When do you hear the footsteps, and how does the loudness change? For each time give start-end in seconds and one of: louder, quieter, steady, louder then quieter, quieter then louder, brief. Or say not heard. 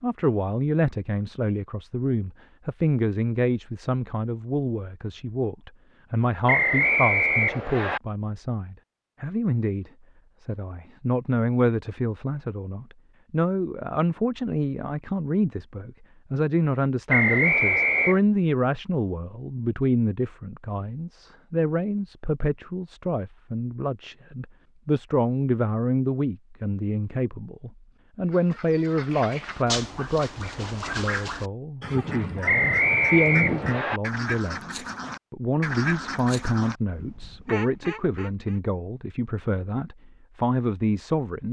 not heard.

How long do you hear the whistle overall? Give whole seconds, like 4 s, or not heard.
4 s.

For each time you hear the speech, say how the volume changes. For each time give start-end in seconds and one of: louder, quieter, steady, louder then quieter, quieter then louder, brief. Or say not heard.
0.0-41.4 steady.